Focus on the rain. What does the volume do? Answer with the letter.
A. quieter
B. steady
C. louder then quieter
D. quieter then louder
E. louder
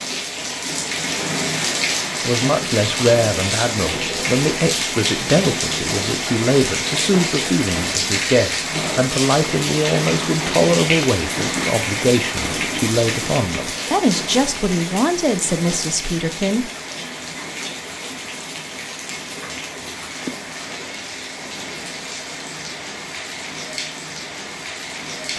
A.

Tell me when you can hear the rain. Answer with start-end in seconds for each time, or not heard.
0.0-25.3.